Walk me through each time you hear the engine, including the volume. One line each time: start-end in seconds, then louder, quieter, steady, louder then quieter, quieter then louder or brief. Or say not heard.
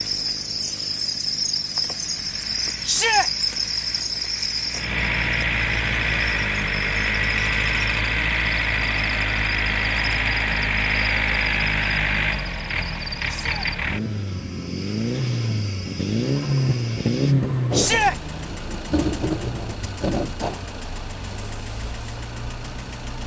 0.0-23.2 louder then quieter.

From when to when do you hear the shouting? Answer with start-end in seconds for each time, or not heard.
2.9-3.3, 13.2-13.7, 17.7-18.1.